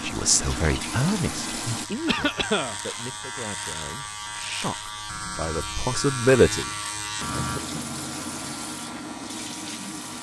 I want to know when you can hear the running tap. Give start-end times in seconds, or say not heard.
0.0-1.9, 7.2-10.1.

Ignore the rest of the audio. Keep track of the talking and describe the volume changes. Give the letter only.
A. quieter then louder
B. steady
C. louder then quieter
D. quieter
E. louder
A.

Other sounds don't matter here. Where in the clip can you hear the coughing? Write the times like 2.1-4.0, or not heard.
2.0-2.8, 7.3-7.8.